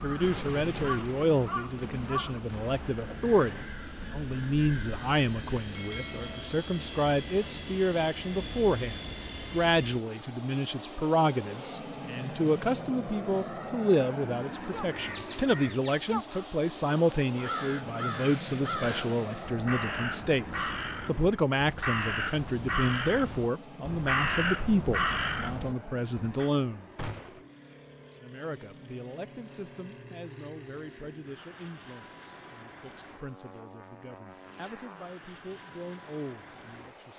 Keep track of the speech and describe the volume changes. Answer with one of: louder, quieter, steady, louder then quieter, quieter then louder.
quieter.